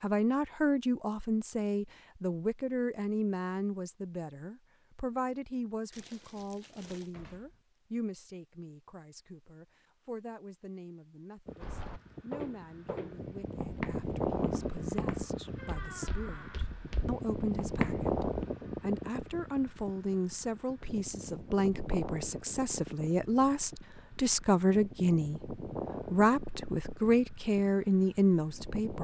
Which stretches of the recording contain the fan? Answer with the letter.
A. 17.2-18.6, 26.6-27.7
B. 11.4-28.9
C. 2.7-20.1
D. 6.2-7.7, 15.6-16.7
B.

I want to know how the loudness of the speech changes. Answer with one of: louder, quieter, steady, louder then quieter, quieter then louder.
quieter then louder.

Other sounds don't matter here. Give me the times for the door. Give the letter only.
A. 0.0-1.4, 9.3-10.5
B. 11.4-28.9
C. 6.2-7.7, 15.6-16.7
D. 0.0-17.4
C.